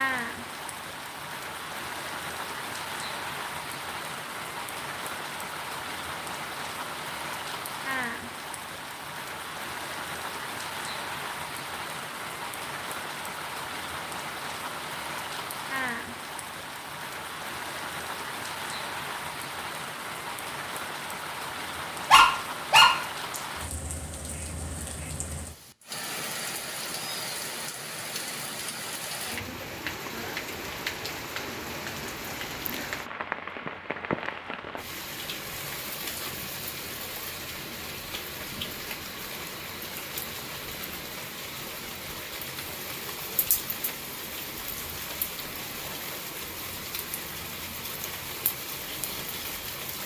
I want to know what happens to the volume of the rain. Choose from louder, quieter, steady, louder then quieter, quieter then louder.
steady.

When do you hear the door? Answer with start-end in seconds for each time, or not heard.
not heard.